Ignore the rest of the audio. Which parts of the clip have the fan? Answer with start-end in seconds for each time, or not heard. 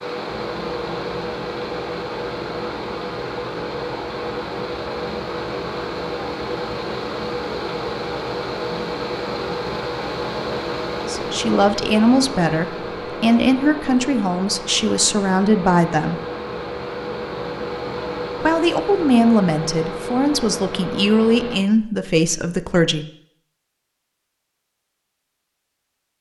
0.0-21.6.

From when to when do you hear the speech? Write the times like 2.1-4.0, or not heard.
10.9-16.2, 18.4-23.1.